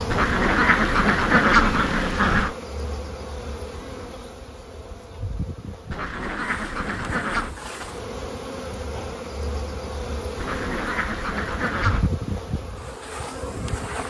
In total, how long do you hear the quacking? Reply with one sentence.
The quacking can be heard for 6 seconds in total.